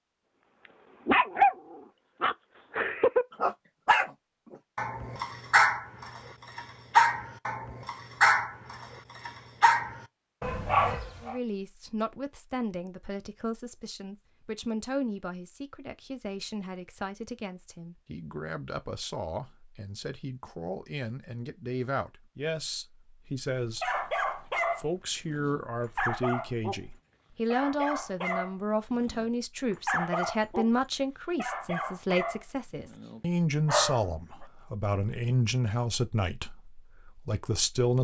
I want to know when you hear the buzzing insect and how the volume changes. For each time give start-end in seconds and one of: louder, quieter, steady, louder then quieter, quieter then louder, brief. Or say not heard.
not heard.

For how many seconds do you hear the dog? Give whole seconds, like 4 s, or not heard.
19 s.